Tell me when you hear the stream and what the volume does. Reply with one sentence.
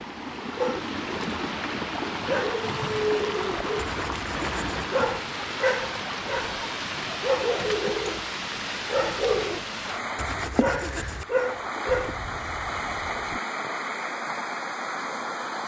The stream can be heard from 0.0 to 15.6 s, at a steady volume.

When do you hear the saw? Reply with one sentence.
The saw can be heard from 3.8 to 4.8 s and from 10.2 to 11.2 s.